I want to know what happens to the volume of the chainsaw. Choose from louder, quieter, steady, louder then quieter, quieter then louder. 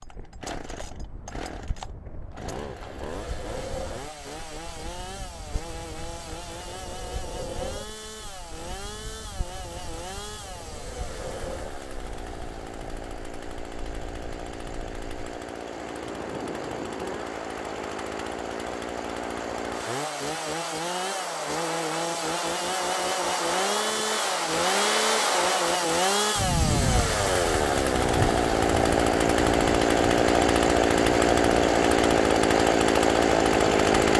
louder.